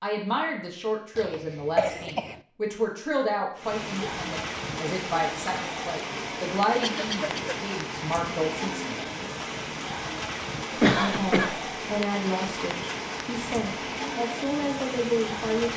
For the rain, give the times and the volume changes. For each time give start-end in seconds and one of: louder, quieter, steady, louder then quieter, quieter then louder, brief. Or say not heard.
3.5-15.7 steady.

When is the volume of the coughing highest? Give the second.
11 s.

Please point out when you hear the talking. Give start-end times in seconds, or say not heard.
0.0-8.9, 10.9-15.7.